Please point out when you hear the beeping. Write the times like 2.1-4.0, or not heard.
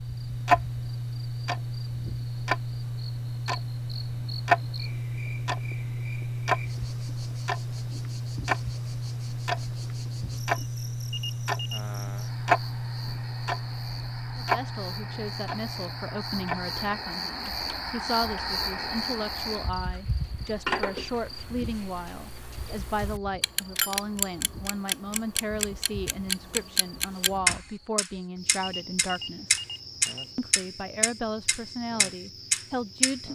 11.1-11.8, 28.6-30.4.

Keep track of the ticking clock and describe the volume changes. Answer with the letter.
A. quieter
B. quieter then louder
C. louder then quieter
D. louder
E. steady
B.